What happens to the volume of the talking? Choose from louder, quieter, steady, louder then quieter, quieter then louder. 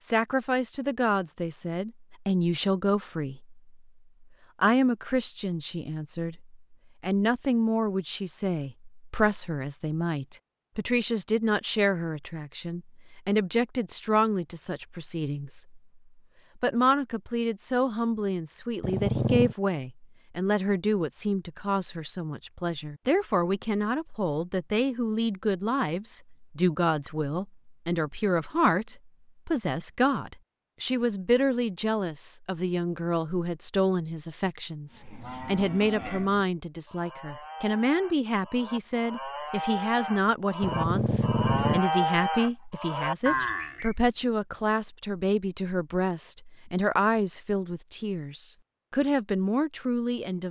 steady.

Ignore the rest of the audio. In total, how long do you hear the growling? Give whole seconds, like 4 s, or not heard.
2 s.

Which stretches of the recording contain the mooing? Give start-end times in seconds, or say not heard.
34.9-44.0.